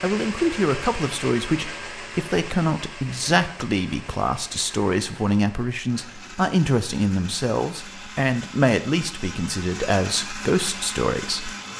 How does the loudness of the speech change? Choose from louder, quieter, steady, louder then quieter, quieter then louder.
steady.